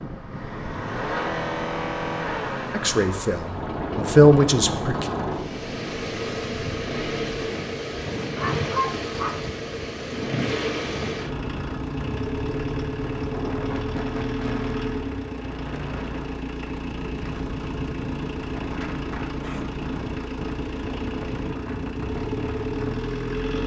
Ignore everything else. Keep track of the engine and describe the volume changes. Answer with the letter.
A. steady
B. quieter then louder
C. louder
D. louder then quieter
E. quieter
A.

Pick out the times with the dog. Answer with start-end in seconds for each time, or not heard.
8.2-9.4.